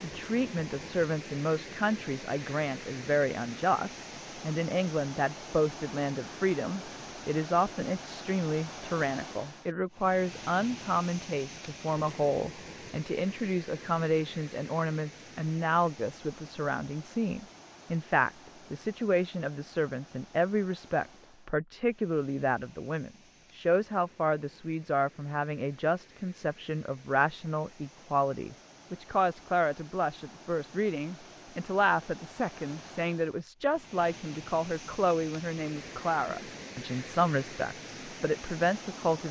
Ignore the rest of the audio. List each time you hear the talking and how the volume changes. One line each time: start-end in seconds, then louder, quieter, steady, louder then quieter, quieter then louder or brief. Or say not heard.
0.0-39.2 steady.